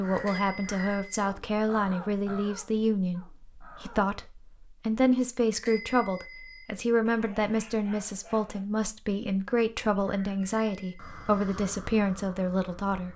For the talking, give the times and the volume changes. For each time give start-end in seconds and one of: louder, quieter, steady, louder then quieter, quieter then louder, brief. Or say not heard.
0.0-13.1 steady.